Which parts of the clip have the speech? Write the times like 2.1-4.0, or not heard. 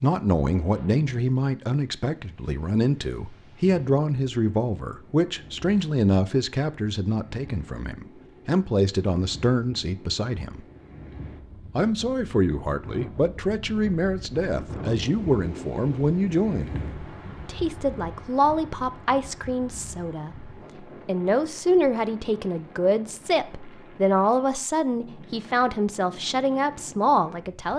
0.0-10.6, 11.8-16.8, 17.4-27.7.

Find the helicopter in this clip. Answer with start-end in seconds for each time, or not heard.
not heard.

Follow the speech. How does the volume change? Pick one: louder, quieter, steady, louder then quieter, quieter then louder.
steady.